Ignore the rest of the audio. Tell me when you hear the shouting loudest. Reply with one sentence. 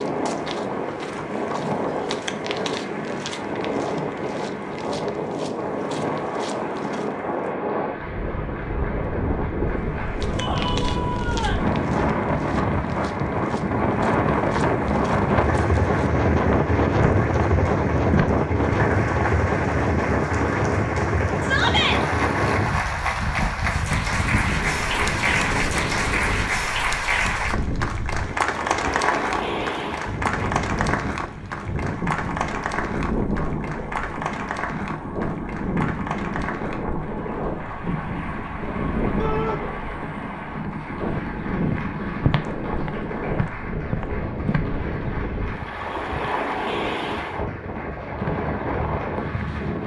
The loudest moment of the shouting is at 22 seconds.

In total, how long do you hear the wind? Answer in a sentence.
You can hear the wind for 50 seconds altogether.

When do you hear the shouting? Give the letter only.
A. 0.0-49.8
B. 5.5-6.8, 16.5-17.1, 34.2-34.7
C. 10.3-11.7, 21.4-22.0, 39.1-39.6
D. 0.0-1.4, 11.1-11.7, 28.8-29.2
C.